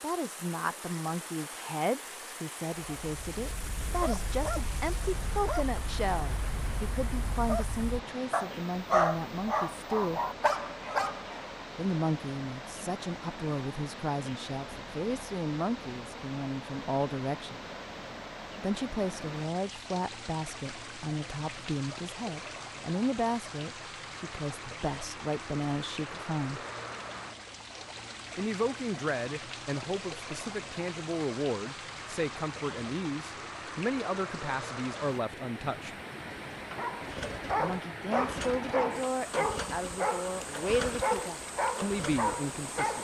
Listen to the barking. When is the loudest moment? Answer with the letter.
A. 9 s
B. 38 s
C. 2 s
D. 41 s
A.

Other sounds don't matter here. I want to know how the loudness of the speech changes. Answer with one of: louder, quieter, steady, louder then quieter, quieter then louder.
steady.